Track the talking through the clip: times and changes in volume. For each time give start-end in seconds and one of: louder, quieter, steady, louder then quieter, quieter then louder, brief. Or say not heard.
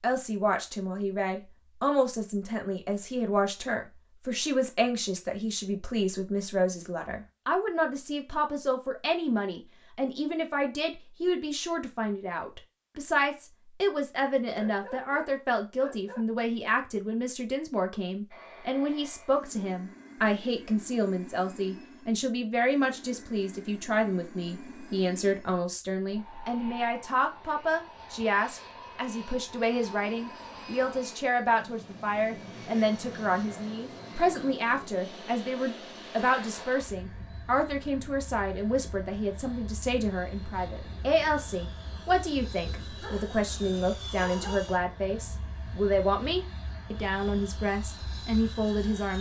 0.0-49.1 steady.